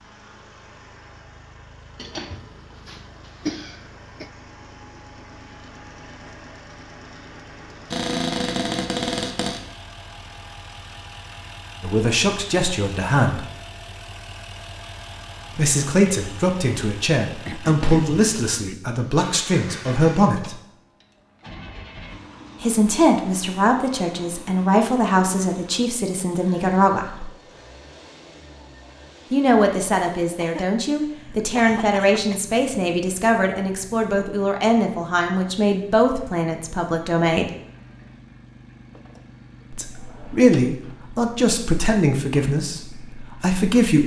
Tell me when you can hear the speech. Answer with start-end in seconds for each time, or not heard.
11.8-13.4, 15.6-20.6, 22.6-27.3, 29.3-37.5, 39.7-44.0.